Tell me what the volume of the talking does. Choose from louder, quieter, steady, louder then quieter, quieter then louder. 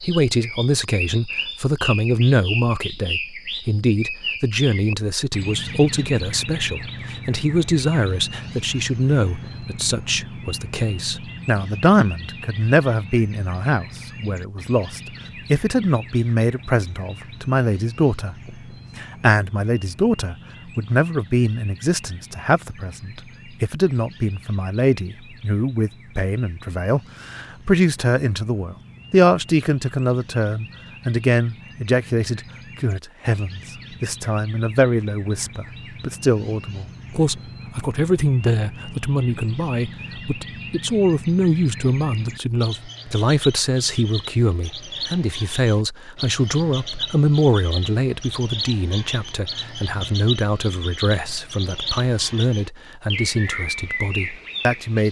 steady.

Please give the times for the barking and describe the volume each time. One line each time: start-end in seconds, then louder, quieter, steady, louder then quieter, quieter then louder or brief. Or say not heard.
not heard.